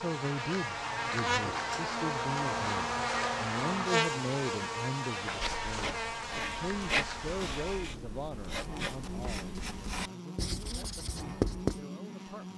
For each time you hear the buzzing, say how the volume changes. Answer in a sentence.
The buzzing can be heard from 0.0 to 12.5 s, getting quieter.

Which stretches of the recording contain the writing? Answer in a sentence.
You can hear the writing from 5.2 to 11.8 s.